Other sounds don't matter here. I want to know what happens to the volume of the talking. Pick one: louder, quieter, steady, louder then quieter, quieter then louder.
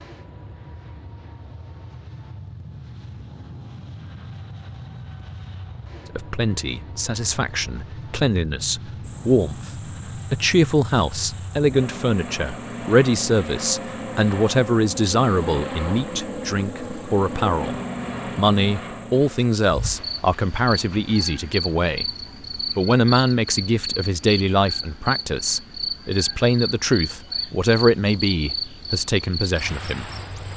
steady.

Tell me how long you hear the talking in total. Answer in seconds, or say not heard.
23 s.